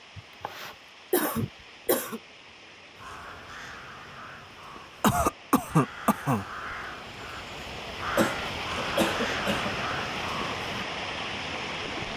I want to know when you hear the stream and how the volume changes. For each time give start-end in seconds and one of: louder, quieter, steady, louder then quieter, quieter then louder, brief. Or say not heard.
0.0-12.1 louder.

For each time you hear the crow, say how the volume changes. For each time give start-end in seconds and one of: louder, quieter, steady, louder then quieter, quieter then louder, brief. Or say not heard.
3.0-10.8 louder.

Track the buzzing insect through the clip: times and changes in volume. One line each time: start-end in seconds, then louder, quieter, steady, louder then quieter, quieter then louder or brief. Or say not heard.
not heard.